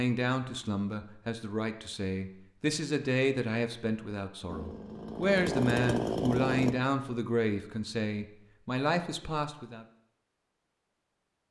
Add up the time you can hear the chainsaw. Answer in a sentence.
The chainsaw can be heard for 2 seconds in total.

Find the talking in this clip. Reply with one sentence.
You can hear the talking from 0.0 to 9.8 s.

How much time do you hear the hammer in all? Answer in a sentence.
You can't hear the hammer here.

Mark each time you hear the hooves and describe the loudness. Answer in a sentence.
You can't hear the hooves here.